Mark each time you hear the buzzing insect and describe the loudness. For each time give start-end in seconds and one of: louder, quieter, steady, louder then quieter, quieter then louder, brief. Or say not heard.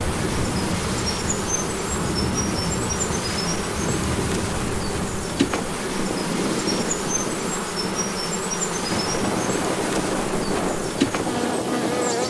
0.0-12.2 steady.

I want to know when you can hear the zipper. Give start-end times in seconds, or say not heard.
not heard.